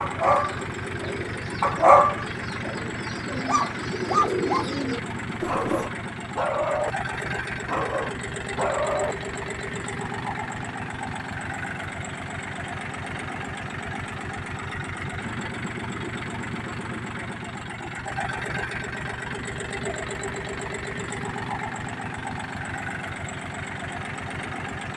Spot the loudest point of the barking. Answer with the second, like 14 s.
2 s.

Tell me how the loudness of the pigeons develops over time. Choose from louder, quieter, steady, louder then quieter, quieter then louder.
quieter then louder.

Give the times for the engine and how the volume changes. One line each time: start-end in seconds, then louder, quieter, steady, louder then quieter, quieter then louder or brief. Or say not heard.
0.0-24.9 steady.